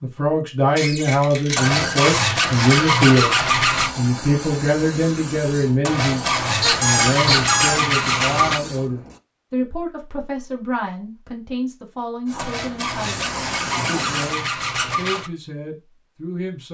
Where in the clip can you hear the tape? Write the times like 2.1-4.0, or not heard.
not heard.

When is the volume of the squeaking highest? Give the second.
7 s.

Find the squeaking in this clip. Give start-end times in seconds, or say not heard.
0.8-2.3, 6.6-7.8.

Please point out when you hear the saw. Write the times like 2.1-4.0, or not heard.
1.6-3.9, 5.8-8.6, 12.3-15.3.